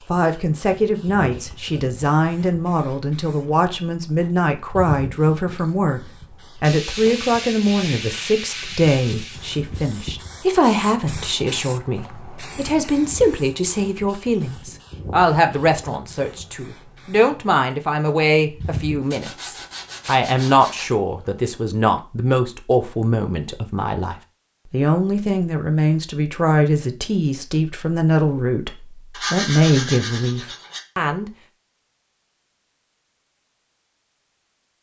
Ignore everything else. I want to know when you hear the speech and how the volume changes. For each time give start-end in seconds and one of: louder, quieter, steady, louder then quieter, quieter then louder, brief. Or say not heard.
0.1-31.3 steady.